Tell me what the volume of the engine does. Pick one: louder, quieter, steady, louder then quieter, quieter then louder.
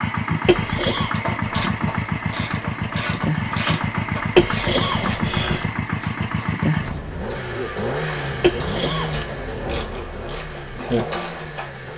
quieter.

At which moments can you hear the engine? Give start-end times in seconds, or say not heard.
0.0-11.9.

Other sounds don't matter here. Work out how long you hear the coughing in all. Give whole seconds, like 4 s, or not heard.
3 s.